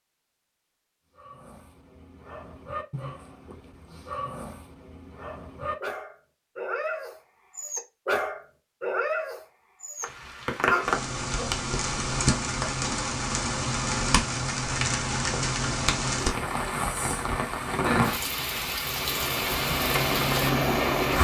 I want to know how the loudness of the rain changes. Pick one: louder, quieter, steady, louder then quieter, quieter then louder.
steady.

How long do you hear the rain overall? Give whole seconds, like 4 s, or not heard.
11 s.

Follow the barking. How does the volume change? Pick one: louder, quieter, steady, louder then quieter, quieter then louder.
louder.